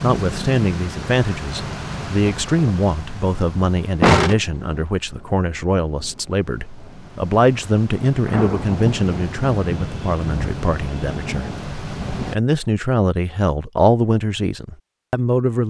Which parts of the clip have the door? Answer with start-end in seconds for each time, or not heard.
4.0-4.8, 8.2-8.8.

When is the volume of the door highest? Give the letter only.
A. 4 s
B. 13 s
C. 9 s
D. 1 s
A.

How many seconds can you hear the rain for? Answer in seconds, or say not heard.
12 s.